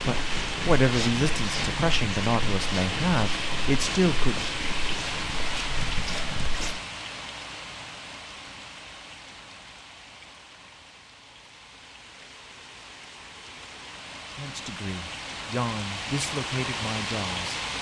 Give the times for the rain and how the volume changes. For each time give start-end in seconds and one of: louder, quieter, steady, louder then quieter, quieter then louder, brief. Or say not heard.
0.0-17.7 quieter then louder.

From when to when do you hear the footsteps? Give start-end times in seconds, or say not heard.
0.0-6.8.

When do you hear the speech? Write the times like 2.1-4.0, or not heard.
0.1-4.5, 14.3-17.6.